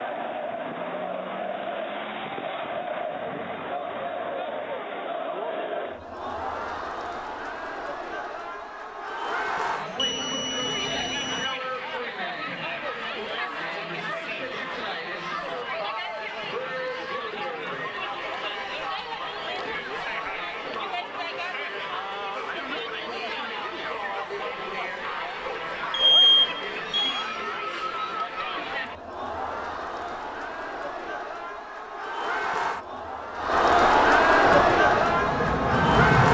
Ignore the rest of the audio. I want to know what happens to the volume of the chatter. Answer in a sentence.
The loudness of the chatter goes up.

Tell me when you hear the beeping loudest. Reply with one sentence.
The volume of the beeping peaks at 26 seconds.